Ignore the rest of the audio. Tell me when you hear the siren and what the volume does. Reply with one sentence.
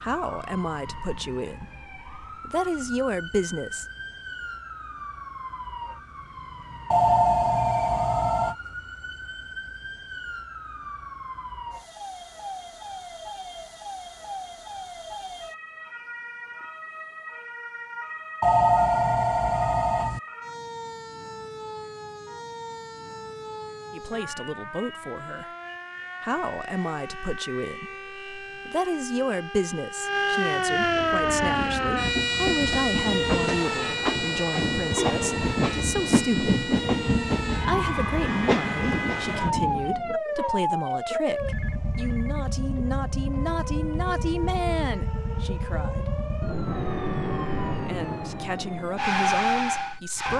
You can hear the siren from 0.0 to 50.3 s, getting louder.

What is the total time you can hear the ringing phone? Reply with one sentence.
You can hear the ringing phone for 5 seconds altogether.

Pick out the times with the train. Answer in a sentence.
The train can be heard from 30.8 to 40.1 s.